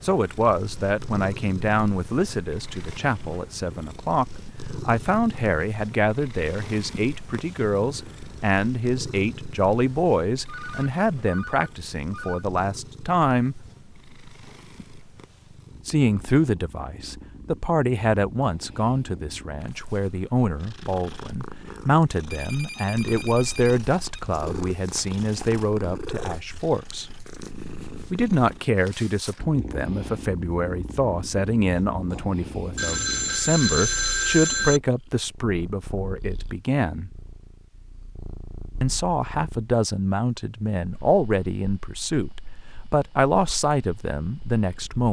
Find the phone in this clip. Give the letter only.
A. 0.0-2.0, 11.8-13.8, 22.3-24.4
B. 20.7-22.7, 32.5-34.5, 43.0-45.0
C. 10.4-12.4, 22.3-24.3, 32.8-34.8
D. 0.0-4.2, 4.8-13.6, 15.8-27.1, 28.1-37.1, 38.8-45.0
C.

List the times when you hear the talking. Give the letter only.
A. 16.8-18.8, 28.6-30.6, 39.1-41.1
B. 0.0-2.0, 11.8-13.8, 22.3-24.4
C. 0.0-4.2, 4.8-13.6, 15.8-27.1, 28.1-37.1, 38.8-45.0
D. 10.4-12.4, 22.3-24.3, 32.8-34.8
C.